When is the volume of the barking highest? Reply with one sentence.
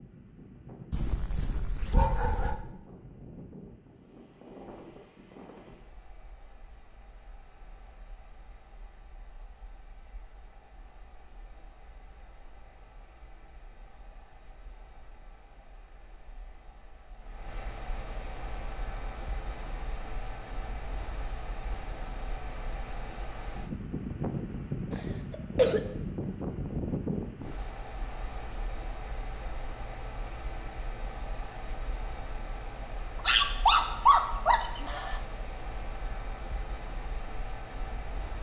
The volume of the barking peaks at 34 seconds.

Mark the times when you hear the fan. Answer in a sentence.
You can hear the fan from 0.0 to 38.3 s.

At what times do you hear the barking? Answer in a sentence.
You can hear the barking from 0.9 to 2.6 s and from 33.2 to 35.2 s.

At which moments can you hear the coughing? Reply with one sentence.
You can hear the coughing from 24.9 to 25.8 s.